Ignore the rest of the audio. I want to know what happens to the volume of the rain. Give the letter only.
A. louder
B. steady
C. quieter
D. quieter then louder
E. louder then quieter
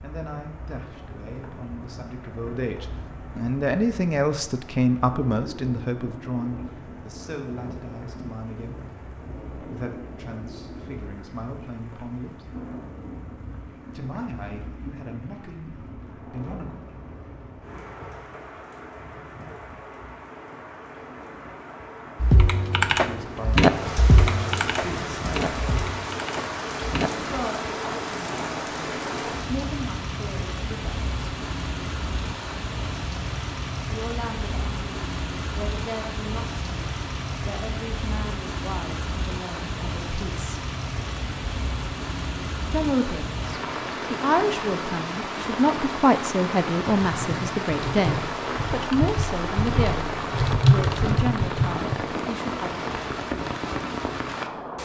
A.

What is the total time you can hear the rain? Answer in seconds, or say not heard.
55 s.